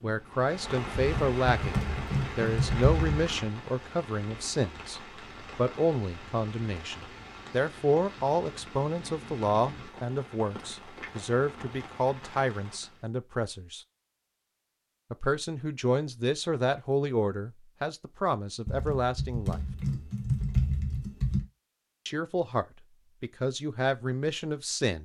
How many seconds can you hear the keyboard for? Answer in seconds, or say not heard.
5 s.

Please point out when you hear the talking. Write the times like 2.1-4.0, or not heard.
0.0-13.8, 15.1-19.6, 22.1-25.0.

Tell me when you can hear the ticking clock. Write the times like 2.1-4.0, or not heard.
not heard.